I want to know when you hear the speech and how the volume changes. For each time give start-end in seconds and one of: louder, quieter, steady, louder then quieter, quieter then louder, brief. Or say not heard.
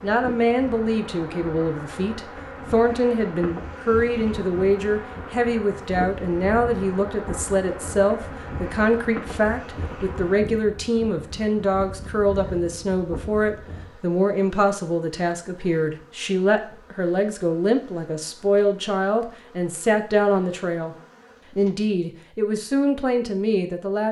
0.0-24.0 steady.